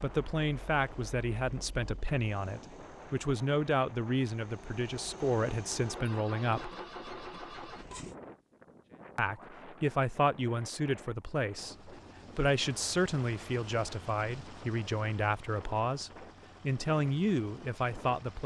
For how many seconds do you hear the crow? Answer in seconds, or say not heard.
not heard.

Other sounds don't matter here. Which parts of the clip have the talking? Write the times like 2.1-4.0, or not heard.
0.0-6.7, 9.2-18.4.